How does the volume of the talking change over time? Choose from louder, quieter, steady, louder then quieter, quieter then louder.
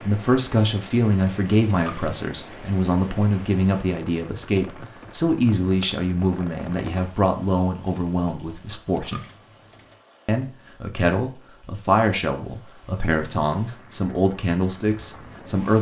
steady.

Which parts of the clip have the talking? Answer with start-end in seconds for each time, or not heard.
0.0-9.2, 10.2-15.7.